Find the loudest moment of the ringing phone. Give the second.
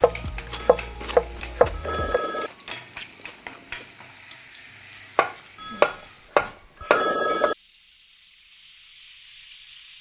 7 s.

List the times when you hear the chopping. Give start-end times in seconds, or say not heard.
0.0-2.2, 5.2-7.5.